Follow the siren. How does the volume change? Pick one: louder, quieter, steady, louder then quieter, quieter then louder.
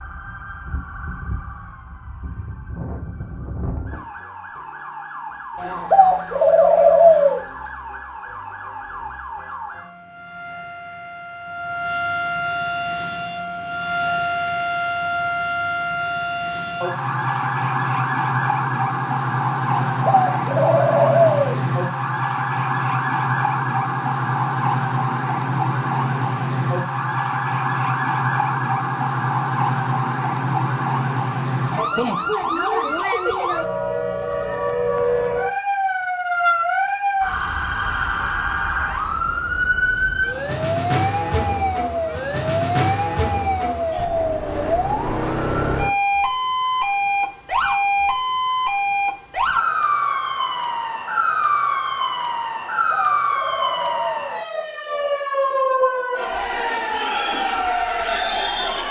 louder.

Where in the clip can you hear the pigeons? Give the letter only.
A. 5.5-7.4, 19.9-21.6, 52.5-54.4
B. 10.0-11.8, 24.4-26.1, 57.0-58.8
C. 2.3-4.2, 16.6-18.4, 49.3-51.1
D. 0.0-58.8
A.